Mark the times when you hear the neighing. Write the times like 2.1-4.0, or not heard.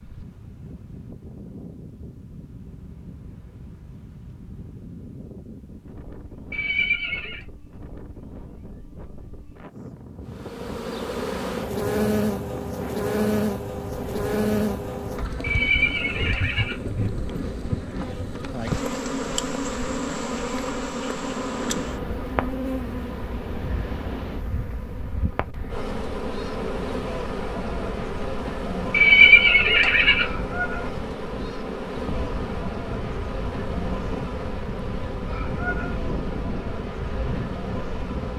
6.5-7.5, 15.4-16.8, 28.9-30.2.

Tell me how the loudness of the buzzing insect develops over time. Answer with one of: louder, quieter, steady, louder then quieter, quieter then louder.
quieter.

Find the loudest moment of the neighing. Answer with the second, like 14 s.
29 s.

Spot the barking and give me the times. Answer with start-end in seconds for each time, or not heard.
not heard.